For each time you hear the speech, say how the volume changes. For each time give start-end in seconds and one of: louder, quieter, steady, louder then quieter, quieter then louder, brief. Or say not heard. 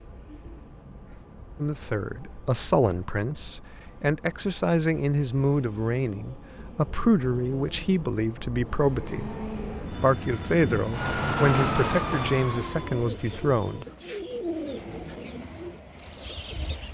1.6-13.8 steady.